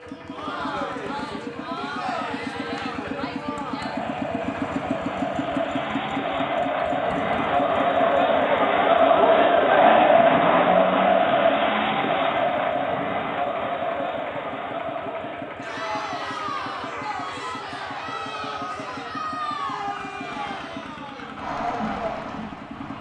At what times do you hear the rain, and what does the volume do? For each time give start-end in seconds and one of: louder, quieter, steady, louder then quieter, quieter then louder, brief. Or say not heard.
not heard.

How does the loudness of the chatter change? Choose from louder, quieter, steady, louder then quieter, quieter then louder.
louder then quieter.